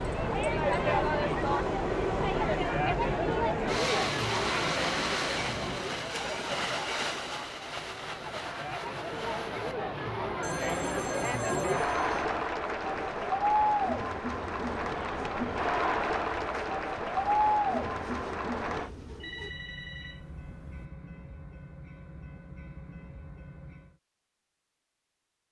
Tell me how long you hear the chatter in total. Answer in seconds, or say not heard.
19 s.